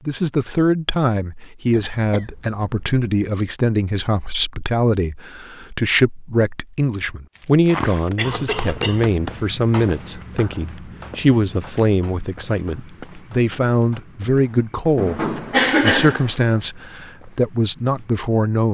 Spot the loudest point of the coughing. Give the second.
16 s.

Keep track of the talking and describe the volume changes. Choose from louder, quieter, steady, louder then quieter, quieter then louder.
steady.